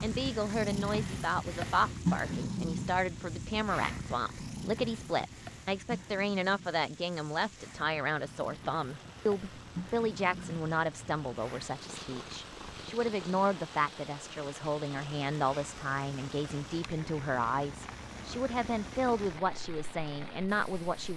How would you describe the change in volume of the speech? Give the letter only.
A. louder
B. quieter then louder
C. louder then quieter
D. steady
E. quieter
D.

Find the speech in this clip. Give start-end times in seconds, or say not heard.
0.0-21.1.